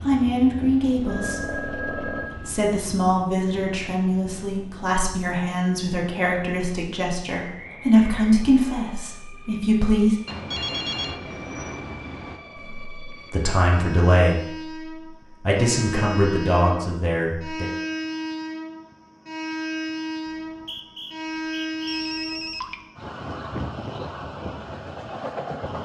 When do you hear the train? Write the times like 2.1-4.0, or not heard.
0.0-25.8.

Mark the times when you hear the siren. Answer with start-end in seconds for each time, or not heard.
not heard.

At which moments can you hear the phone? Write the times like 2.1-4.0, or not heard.
0.6-2.6, 10.2-12.4, 21.9-22.9.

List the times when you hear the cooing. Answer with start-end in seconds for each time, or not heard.
not heard.